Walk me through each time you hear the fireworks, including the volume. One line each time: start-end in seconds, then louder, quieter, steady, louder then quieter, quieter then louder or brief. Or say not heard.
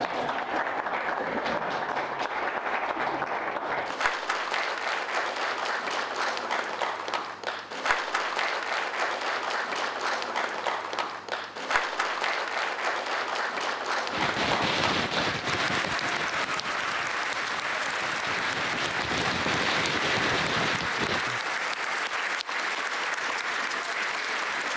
14.1-21.2 quieter then louder.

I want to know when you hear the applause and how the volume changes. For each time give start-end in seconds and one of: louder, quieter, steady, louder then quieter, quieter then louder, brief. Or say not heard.
0.0-24.7 steady.